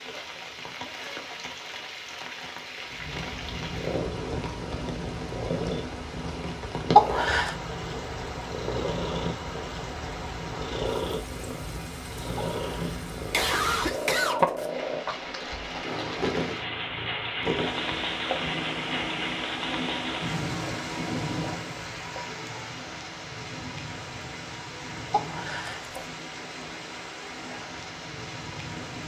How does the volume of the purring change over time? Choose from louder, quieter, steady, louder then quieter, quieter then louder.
quieter.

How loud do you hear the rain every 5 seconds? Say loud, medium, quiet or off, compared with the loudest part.
medium, medium, medium, loud, loud, medium.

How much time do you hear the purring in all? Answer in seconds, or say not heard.
26 s.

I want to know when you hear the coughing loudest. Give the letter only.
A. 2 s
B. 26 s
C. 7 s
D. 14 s
C.